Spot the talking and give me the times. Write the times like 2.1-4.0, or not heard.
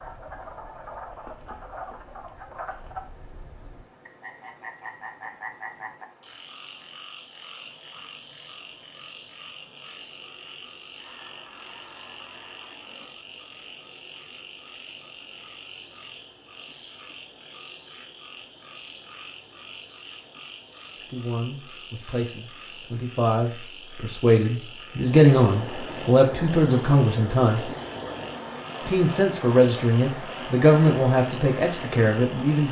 21.0-27.6, 28.9-32.6.